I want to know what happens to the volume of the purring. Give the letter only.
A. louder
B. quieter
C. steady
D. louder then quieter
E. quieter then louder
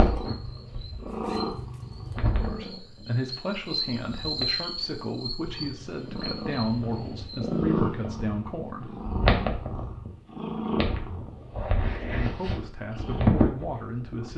E.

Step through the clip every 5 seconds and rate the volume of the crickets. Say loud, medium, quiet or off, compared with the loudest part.
loud, medium, off.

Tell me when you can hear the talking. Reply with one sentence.
You can hear the talking from 2.3 to 8.9 s and from 12.1 to 14.3 s.